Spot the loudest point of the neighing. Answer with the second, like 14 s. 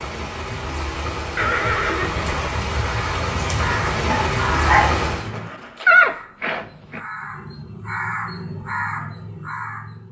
6 s.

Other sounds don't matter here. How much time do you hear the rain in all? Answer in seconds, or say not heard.
5 s.